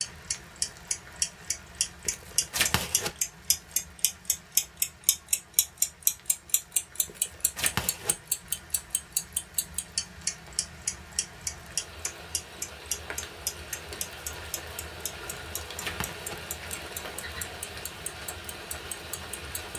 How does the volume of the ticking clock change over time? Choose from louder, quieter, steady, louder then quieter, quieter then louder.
quieter.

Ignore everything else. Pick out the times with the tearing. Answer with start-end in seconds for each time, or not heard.
2.0-3.5, 7.0-8.2, 15.3-17.2.